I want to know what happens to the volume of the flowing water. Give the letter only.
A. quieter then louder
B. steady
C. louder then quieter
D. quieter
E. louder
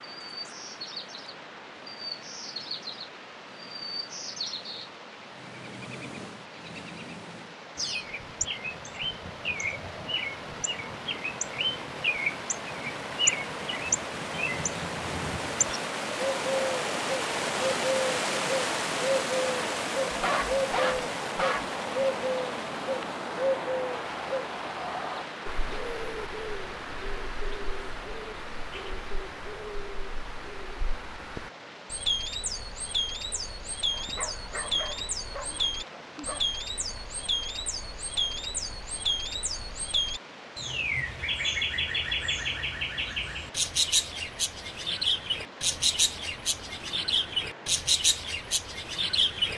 C.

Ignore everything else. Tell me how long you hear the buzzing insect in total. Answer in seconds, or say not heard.
not heard.